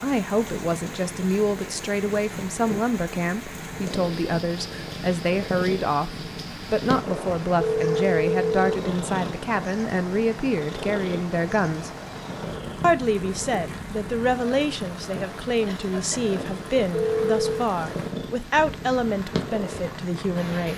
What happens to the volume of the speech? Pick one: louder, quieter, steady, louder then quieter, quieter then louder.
steady.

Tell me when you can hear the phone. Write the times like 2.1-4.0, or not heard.
7.5-8.6, 16.9-17.6.